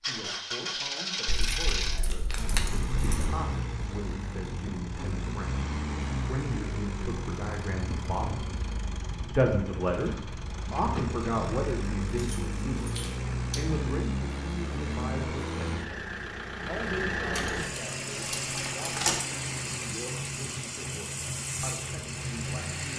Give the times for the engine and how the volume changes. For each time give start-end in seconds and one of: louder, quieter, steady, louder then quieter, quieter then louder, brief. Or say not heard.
0.0-22.9 steady.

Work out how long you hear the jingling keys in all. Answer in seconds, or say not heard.
6 s.